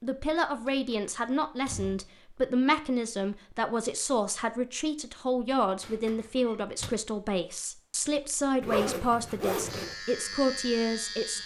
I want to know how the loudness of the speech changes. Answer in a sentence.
The volume of the speech stays about the same.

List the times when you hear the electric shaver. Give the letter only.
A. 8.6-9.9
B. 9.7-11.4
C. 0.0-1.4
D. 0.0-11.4
B.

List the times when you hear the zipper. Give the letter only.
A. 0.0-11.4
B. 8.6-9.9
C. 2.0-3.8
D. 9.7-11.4
B.